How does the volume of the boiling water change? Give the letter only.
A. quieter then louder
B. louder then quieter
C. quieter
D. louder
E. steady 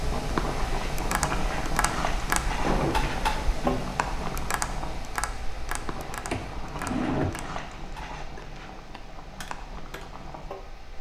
C.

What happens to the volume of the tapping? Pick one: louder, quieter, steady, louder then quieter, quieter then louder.
quieter.